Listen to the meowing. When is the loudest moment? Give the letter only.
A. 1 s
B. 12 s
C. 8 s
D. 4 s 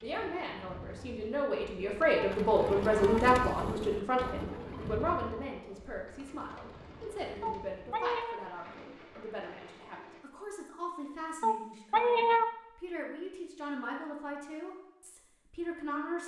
B.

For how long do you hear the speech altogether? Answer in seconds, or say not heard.
16 s.